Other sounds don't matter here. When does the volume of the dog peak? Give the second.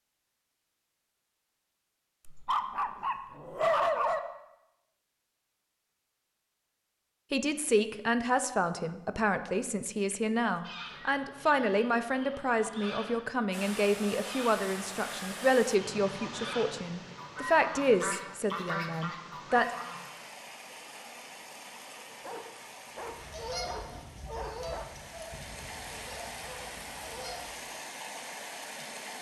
4 s.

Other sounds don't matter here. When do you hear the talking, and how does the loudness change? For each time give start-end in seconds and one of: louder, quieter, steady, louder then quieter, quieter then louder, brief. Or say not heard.
7.3-19.9 steady.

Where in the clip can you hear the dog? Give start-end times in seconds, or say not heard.
2.2-4.2, 22.1-24.9.